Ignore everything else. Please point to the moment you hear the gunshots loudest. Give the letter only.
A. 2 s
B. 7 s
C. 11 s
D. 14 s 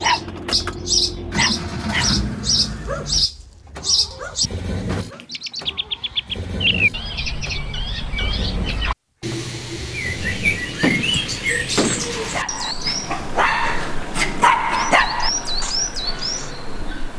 C.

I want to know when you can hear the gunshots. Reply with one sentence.
The gunshots can be heard from 10.8 to 12.3 s.